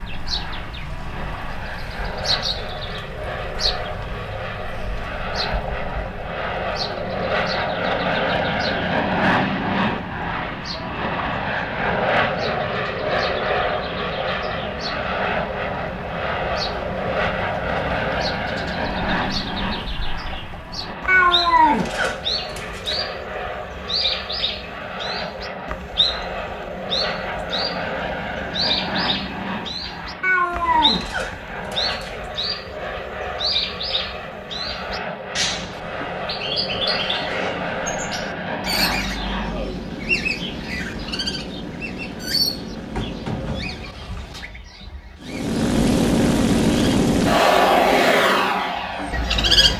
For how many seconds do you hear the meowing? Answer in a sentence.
You can hear the meowing for 4 seconds altogether.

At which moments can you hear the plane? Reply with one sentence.
The plane can be heard from 0.0 to 44.0 s and from 45.2 to 49.7 s.